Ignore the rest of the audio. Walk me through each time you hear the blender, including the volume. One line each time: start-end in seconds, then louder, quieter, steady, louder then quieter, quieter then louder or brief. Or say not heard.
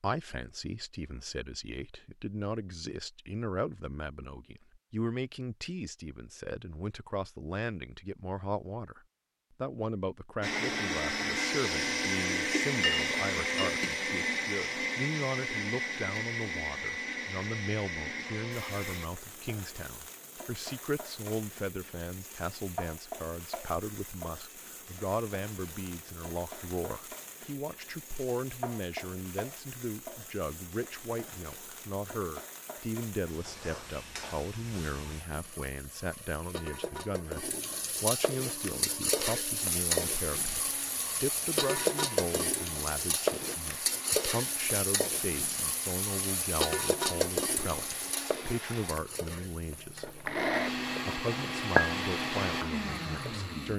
10.4-19.1 quieter
38.5-53.7 louder.